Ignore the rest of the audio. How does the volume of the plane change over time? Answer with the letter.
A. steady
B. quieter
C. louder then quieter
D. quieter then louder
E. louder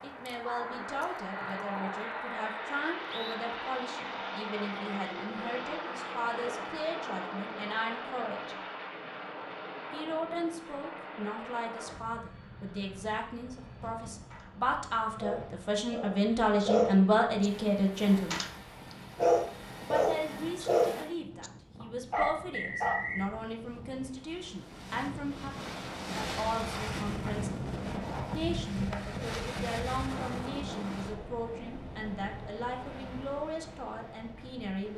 B.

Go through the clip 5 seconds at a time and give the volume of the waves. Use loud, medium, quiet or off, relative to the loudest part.
off, off, off, medium, medium, loud, medium.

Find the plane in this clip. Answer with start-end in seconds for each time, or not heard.
0.0-20.6.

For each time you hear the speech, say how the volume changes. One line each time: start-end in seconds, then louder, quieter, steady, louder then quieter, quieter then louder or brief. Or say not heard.
0.0-8.6 steady
9.9-18.4 louder
19.9-27.7 steady
28.3-34.9 steady.